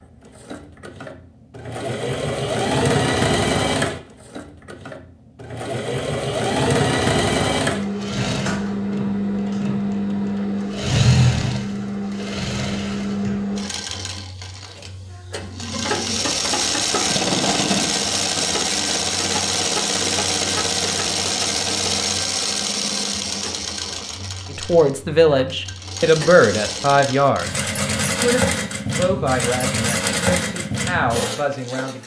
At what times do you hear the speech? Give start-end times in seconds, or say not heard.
24.5-32.0.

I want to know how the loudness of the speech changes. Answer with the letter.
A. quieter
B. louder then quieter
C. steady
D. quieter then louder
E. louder
A.